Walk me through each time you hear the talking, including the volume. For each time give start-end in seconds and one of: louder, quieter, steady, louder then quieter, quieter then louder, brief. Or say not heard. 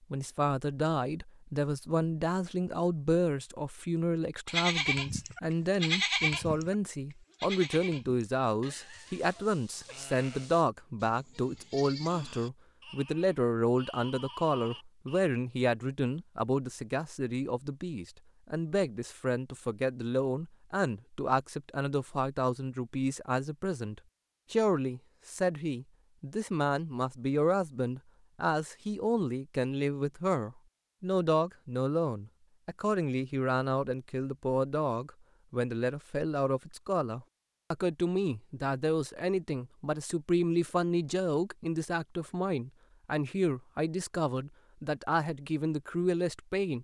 0.1-46.7 steady.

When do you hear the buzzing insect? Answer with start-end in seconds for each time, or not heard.
not heard.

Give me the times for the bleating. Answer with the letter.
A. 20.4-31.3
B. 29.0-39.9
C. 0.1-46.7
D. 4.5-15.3
D.